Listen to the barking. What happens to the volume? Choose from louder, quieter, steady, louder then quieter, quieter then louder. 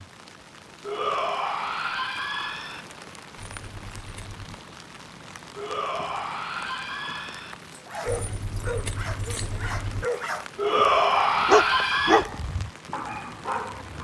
louder then quieter.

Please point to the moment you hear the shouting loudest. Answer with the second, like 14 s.
11 s.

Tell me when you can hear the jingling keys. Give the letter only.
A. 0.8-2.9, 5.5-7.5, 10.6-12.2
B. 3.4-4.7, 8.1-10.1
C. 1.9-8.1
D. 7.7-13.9
B.